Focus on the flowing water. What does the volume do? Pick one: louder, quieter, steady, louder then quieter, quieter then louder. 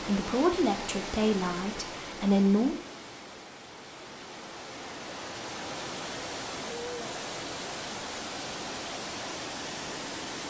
quieter then louder.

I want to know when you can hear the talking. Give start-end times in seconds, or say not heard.
0.0-2.8.